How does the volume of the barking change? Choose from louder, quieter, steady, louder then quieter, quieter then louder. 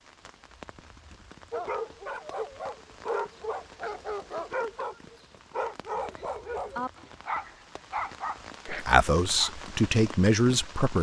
steady.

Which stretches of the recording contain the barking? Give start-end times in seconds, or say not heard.
1.5-9.5.